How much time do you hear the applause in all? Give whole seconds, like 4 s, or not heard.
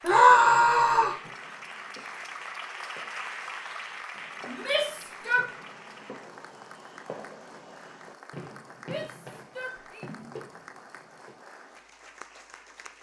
13 s.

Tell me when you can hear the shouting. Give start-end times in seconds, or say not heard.
0.0-1.1, 4.5-5.5, 8.8-10.1.